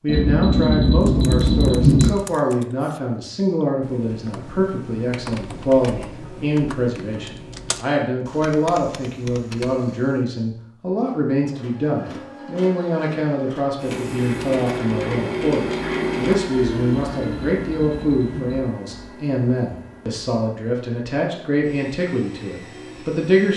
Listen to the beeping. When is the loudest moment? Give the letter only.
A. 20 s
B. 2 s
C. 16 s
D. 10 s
B.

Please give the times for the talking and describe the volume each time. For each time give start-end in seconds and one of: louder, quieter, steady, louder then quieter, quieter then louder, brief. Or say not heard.
0.0-23.5 steady.